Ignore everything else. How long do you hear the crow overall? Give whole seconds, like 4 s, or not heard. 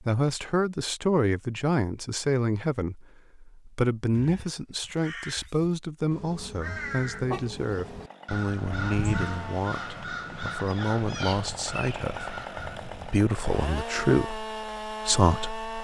9 s.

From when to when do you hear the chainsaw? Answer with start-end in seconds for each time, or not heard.
7.7-15.7.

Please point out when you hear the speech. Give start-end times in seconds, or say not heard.
0.1-15.7.